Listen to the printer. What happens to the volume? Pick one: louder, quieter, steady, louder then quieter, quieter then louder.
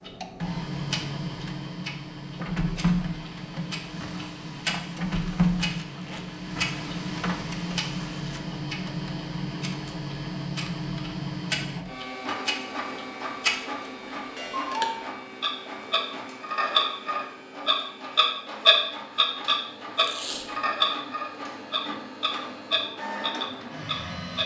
quieter.